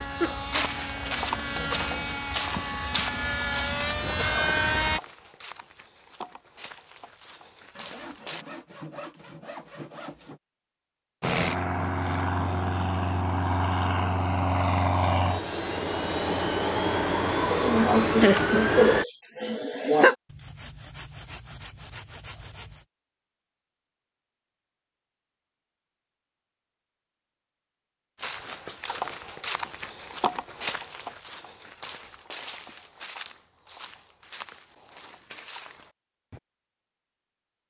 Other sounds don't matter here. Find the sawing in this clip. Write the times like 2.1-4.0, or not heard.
7.8-10.4, 20.2-22.9.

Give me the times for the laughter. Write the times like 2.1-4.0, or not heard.
17.5-20.1.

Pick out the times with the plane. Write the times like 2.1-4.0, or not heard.
0.0-5.0, 11.2-19.1.